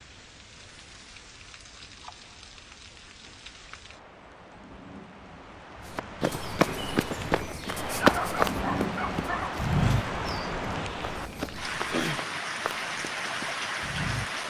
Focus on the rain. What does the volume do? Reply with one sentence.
The volume of the rain goes up.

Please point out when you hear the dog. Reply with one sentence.
You can hear the dog from 8.0 to 9.6 s.